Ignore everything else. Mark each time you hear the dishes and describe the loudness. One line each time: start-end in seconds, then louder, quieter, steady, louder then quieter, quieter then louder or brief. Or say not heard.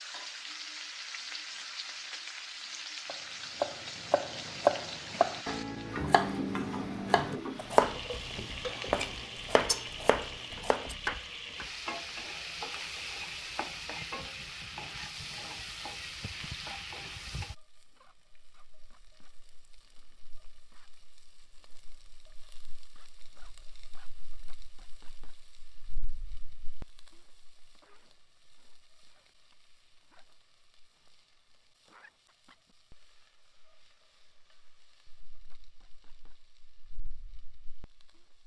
not heard.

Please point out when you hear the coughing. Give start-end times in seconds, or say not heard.
not heard.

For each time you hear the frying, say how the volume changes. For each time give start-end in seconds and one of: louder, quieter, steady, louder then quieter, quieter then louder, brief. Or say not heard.
0.0-38.4 quieter.